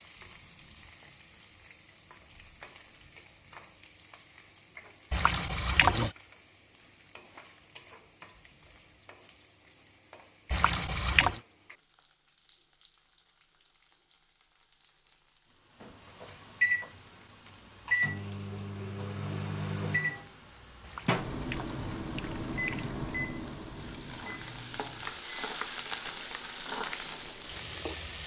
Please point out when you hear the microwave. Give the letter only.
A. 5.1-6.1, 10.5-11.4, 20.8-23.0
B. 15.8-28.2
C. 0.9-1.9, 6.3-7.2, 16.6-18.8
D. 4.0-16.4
B.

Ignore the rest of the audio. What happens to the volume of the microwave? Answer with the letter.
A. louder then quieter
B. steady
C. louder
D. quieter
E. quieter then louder
D.